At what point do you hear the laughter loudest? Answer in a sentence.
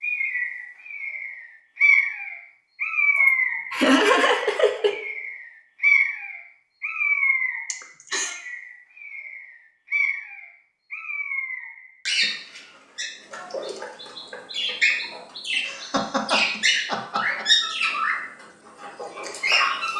The volume of the laughter peaks at 4 seconds.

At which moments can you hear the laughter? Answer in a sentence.
You can hear the laughter from 3.1 to 5.0 s, from 7.7 to 8.3 s and from 15.7 to 17.4 s.